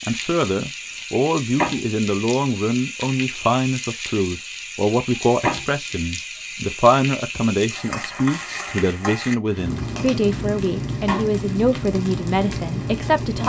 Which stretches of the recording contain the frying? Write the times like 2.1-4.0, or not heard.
0.0-13.4.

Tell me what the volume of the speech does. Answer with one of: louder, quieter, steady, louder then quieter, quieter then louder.
steady.